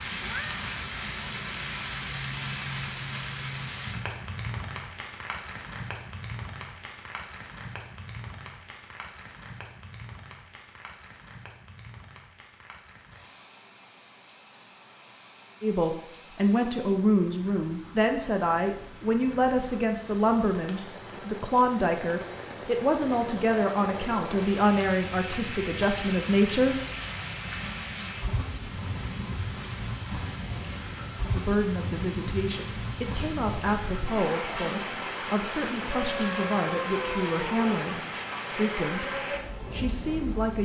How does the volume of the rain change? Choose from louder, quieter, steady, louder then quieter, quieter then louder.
quieter then louder.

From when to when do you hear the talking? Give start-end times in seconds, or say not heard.
15.6-26.8, 31.3-40.6.